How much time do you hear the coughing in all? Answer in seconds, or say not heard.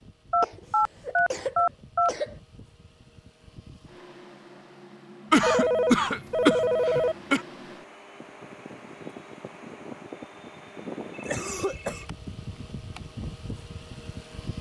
5 s.